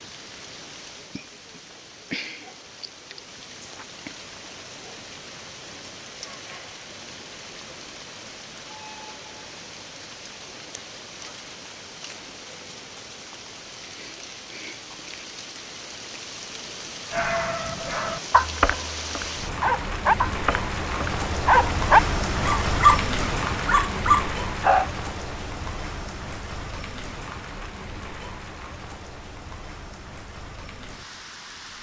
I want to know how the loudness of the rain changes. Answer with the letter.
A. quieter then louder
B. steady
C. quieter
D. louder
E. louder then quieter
E.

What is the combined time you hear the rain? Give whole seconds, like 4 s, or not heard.
32 s.